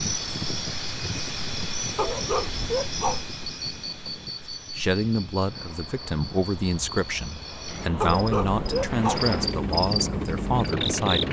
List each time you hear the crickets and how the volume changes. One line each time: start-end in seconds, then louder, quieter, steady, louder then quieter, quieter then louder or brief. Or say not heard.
0.0-11.2 quieter then louder.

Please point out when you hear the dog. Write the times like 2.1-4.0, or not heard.
1.9-3.2, 8.0-9.2.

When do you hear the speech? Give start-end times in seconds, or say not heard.
4.8-11.2.